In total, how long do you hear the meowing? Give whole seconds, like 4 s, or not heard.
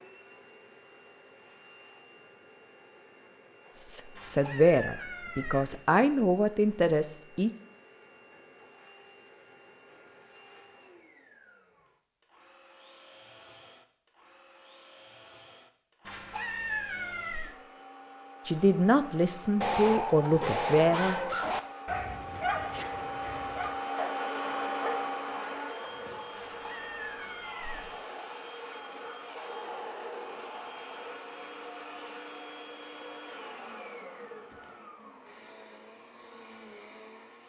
5 s.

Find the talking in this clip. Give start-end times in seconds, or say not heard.
3.8-7.5, 18.4-21.1.